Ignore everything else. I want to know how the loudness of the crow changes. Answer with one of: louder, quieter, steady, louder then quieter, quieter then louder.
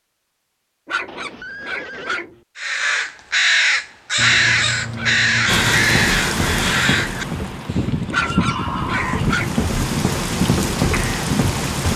quieter.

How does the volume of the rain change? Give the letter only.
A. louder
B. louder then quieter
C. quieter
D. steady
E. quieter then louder
E.